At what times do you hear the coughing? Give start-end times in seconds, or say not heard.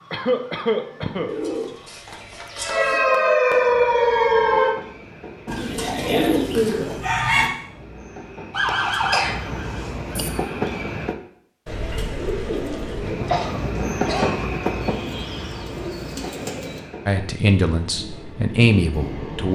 0.1-1.3, 8.7-10.2, 13.2-14.5.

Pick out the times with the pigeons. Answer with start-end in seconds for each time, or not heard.
1.2-3.0, 5.5-7.5, 11.7-13.2, 14.8-16.8.